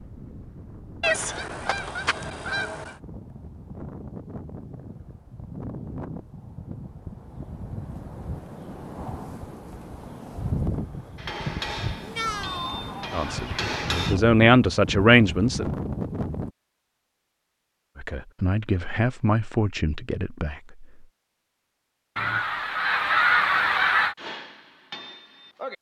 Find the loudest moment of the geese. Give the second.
23 s.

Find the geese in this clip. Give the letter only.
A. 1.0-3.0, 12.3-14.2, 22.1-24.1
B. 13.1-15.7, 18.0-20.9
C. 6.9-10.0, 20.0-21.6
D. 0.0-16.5
A.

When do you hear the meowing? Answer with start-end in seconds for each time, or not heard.
12.0-12.8.